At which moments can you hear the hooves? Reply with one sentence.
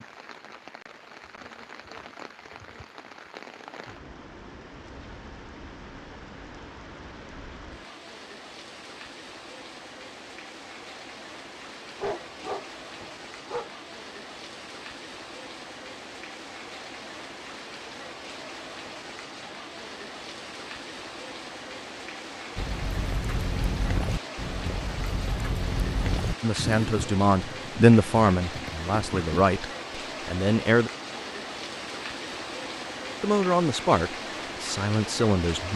You can hear the hooves from 22.6 to 29.2 s.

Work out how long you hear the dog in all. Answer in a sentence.
You can hear the dog for 2 seconds altogether.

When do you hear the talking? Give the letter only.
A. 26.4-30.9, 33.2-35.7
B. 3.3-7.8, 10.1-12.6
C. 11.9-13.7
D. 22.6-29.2
A.